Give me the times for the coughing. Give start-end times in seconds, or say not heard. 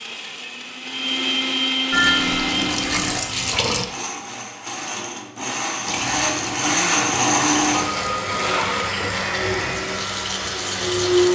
not heard.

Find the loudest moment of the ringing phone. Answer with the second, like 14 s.
2 s.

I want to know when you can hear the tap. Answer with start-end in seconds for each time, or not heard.
1.9-3.9, 5.8-11.3.